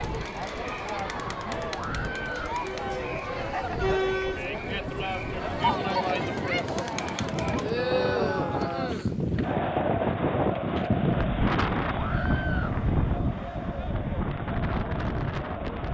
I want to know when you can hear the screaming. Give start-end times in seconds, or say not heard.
1.7-2.5, 7.7-8.9, 11.9-12.8.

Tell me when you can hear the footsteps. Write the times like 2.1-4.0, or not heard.
not heard.